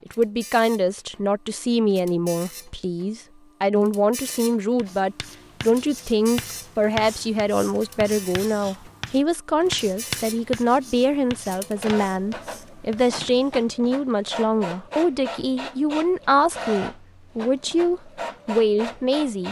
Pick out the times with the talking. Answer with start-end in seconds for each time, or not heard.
0.1-19.4.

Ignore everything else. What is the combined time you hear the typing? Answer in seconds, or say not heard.
not heard.